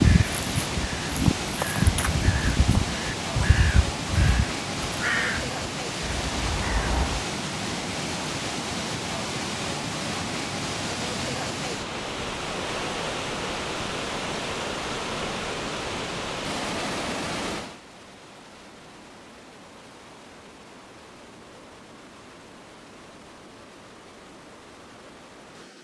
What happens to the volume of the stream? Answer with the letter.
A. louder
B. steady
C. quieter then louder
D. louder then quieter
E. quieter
E.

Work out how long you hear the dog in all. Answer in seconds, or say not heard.
not heard.